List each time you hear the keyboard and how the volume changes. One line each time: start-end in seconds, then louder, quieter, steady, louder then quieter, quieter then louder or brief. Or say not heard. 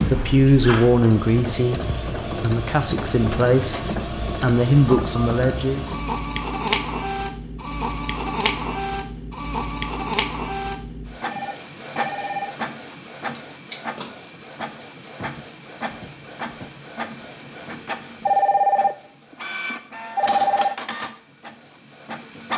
not heard.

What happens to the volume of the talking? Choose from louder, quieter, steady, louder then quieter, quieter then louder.
quieter then louder.